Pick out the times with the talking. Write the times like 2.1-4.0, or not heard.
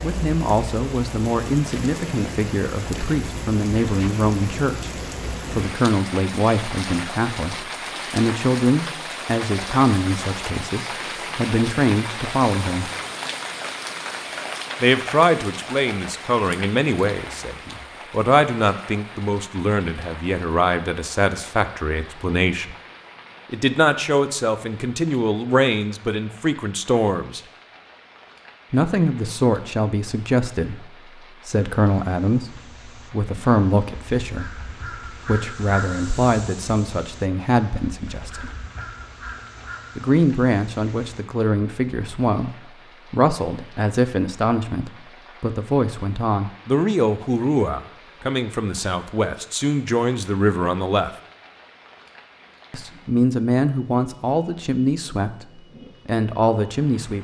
0.0-12.9, 14.8-22.8, 23.5-27.4, 28.7-38.5, 40.0-51.1, 52.7-57.2.